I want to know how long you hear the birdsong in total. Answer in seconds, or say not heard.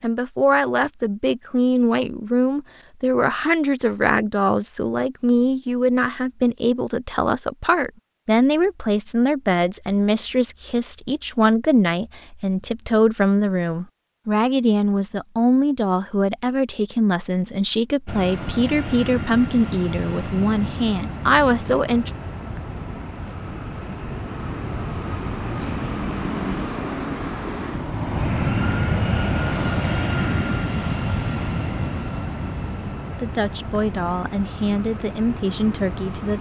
not heard.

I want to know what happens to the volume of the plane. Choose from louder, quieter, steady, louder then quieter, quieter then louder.
louder then quieter.